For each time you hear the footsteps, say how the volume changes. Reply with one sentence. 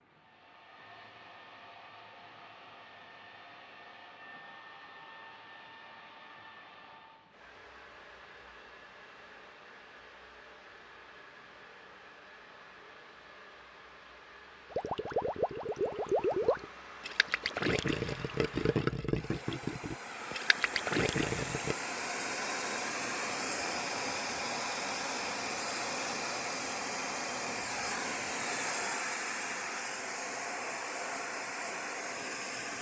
The footsteps can't be heard in this clip.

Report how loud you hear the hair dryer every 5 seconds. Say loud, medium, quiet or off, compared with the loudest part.
quiet, quiet, quiet, quiet, loud, loud, loud.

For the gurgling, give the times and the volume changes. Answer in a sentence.
The gurgling can be heard from 14.7 to 21.8 s, at a steady volume.